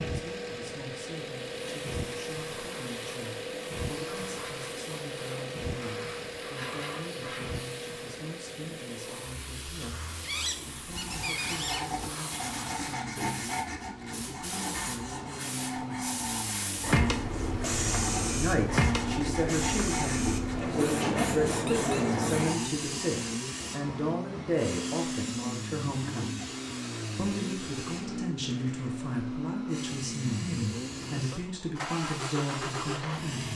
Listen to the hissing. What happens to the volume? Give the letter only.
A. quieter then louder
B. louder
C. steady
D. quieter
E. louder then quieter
E.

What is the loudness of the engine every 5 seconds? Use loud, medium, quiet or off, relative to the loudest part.
loud, loud, medium, loud, loud, loud, loud.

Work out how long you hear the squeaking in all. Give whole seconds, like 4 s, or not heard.
2 s.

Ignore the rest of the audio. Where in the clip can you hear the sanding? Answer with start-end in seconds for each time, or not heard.
10.8-22.7.